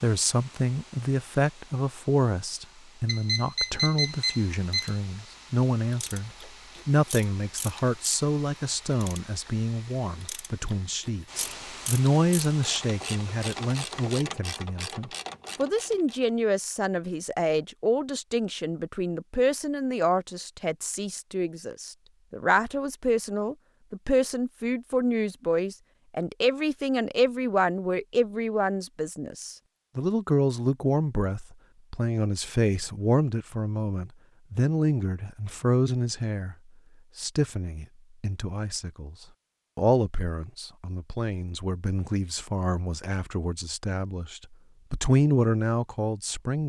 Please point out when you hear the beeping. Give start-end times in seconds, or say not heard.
3.0-5.0.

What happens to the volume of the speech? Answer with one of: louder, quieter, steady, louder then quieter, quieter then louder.
steady.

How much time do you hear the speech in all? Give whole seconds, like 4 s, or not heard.
46 s.